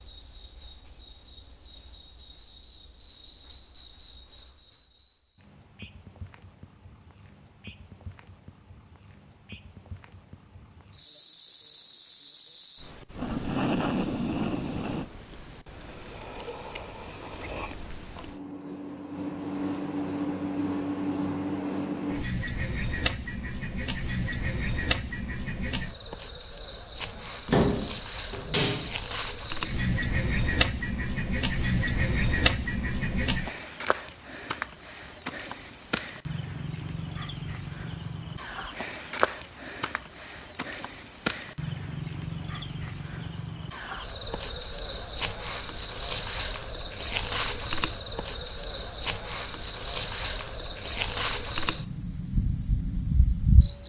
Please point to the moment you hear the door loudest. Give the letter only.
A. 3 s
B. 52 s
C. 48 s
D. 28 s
D.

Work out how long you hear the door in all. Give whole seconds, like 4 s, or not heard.
2 s.